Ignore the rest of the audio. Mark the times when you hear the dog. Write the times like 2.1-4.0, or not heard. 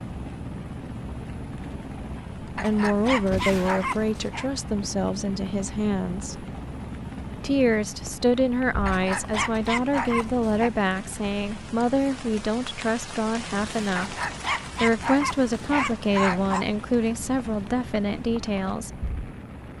2.5-4.5, 8.8-10.7, 13.9-16.6.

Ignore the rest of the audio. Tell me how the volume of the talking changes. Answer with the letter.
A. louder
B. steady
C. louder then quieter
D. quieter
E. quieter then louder
B.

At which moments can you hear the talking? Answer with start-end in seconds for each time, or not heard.
2.4-6.5, 7.4-14.2, 14.8-19.0.